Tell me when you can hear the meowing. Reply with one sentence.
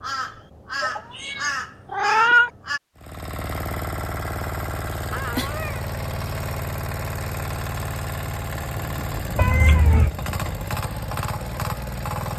You can hear the meowing from 0.8 to 2.5 s, from 5.1 to 5.8 s and from 9.3 to 10.2 s.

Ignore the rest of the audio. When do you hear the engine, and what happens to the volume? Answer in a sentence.
The engine can be heard from 3.0 to 12.3 s, at a steady volume.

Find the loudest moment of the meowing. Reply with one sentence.
The volume of the meowing peaks at 2 seconds.